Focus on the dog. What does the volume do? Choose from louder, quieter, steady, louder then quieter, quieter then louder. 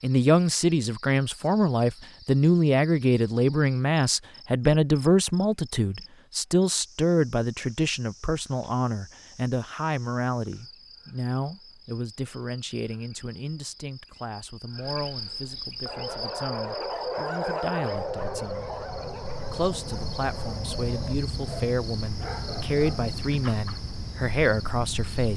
quieter.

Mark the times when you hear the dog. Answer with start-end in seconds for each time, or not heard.
15.5-23.9.